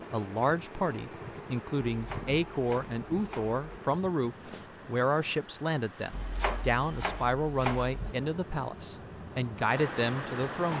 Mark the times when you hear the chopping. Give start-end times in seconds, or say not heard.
1.9-3.6, 6.1-8.2.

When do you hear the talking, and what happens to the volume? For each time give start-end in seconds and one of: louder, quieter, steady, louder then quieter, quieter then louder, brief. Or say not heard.
0.0-10.7 steady.